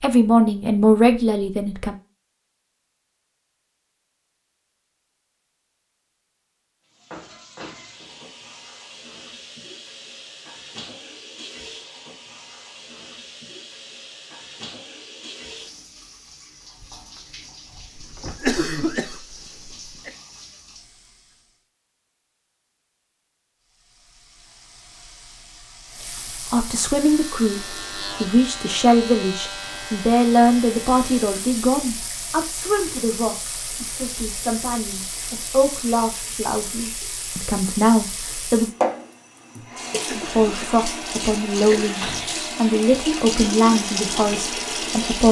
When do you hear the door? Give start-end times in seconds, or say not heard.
7.1-8.2, 16.8-18.4, 41.5-42.3.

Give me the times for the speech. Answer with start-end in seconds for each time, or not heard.
0.0-1.9, 26.5-38.8, 40.1-45.2.